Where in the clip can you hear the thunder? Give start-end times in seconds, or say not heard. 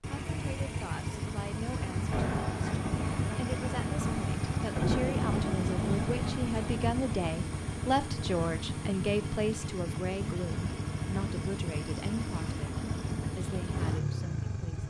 2.1-6.9.